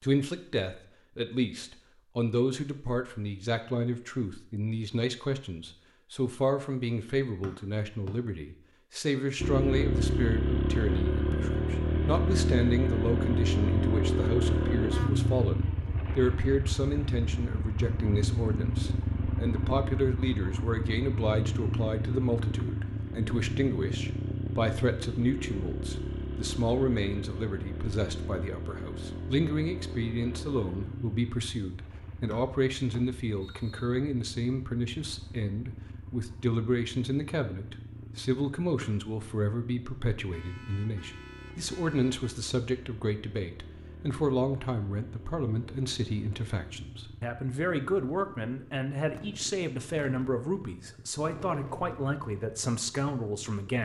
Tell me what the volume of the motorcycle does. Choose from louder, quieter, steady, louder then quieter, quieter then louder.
quieter.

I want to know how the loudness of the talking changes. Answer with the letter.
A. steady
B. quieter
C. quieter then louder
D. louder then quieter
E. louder
A.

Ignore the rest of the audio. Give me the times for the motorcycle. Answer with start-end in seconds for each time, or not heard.
9.3-53.7.